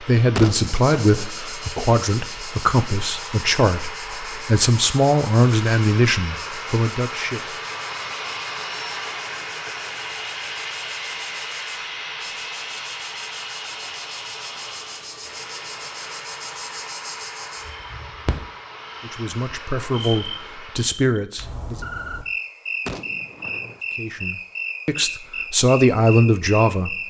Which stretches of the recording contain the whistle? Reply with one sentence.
You can't hear the whistle here.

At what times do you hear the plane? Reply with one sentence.
You can hear the plane from 0.0 to 21.0 s.